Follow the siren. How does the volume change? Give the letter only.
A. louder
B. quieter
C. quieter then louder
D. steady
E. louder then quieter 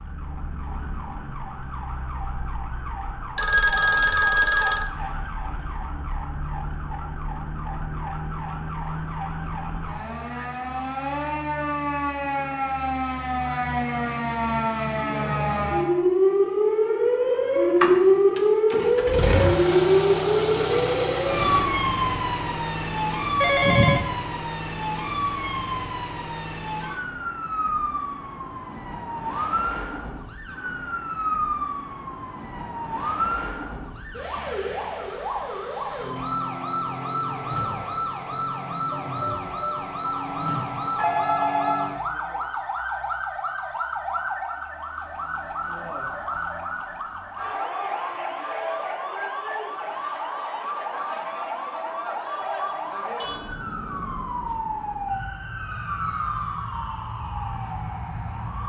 E.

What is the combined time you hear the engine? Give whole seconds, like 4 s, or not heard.
4 s.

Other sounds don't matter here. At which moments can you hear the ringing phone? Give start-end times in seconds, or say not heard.
3.4-4.9, 23.4-24.1, 40.0-42.0.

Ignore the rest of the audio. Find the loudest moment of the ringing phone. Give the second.
4 s.